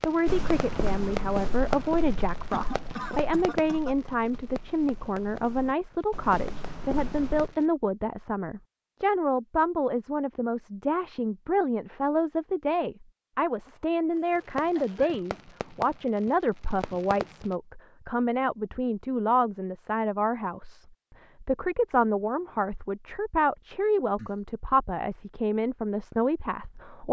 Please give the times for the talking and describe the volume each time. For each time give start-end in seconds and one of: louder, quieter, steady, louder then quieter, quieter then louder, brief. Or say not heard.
0.0-27.0 steady.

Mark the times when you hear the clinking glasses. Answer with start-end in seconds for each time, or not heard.
not heard.